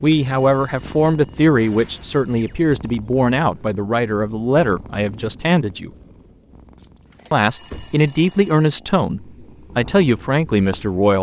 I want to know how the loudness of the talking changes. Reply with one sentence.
The volume of the talking stays about the same.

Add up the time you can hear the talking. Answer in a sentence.
You can hear the talking for 10 seconds altogether.